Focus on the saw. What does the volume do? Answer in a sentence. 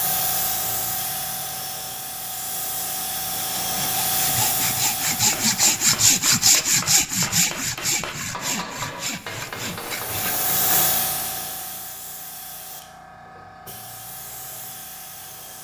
The loudness of the saw goes up, then down.